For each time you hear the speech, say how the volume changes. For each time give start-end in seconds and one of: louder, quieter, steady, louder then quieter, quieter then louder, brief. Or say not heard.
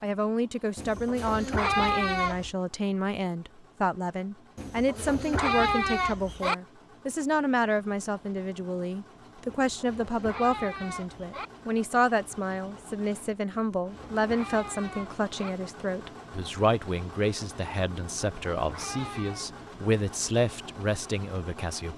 0.0-21.9 steady.